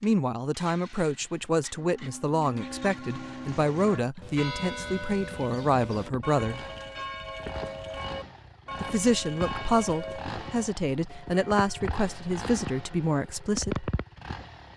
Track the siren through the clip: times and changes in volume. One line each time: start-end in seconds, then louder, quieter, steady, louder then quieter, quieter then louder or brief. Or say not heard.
not heard.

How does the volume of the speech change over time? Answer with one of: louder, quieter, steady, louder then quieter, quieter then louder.
steady.